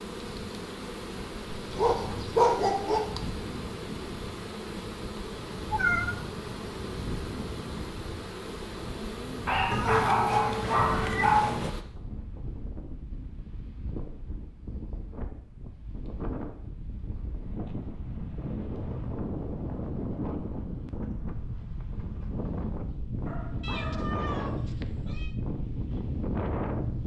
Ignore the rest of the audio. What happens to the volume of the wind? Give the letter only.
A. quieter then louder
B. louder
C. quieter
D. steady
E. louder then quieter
B.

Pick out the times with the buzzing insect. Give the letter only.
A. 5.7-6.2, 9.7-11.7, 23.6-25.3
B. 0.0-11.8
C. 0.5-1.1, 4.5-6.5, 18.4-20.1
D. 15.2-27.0
B.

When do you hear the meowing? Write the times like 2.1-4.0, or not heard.
5.7-6.2, 9.7-11.7, 23.6-25.3.